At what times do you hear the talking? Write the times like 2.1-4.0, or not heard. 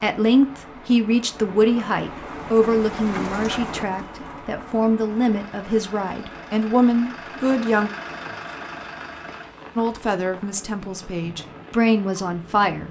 0.0-7.9, 9.8-12.8.